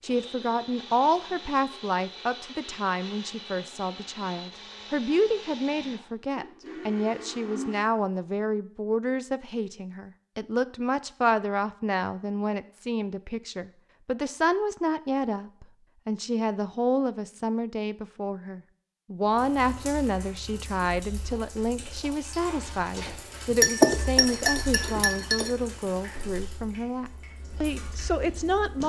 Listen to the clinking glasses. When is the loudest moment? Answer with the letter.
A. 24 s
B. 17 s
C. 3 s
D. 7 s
A.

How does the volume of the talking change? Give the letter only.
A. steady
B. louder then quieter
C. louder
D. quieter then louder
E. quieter
A.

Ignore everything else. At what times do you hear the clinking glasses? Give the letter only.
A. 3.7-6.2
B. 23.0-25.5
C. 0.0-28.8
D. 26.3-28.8
B.